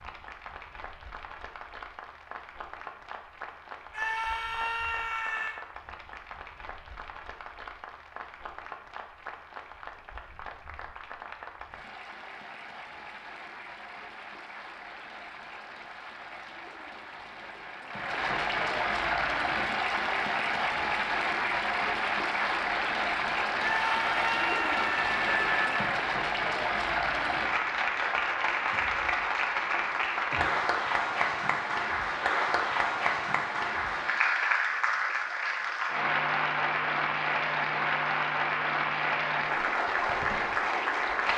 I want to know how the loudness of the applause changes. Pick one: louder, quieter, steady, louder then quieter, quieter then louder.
louder.